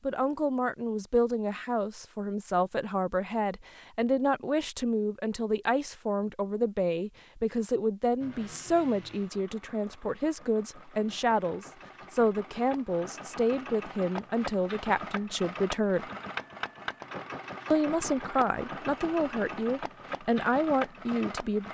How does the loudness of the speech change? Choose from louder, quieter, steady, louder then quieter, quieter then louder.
steady.